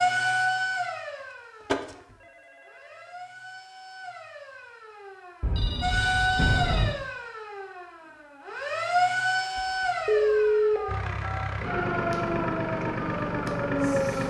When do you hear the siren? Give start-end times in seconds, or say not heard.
0.0-14.2.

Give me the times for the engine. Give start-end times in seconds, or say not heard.
10.8-14.2.